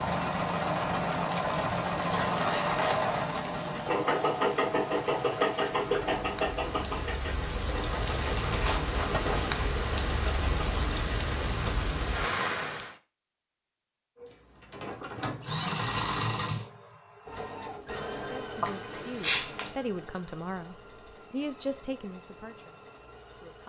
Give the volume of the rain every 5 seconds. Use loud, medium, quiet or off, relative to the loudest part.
medium, loud, loud, off, off.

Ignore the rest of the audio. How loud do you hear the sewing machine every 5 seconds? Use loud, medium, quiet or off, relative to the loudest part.
loud, loud, quiet, medium, quiet.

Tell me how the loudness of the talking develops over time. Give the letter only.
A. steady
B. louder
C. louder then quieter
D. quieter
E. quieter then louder
C.